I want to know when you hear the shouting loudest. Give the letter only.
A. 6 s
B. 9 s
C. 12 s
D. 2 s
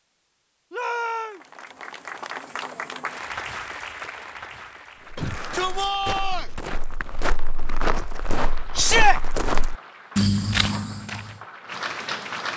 B.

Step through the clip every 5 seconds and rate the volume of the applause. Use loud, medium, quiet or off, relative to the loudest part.
loud, medium, loud.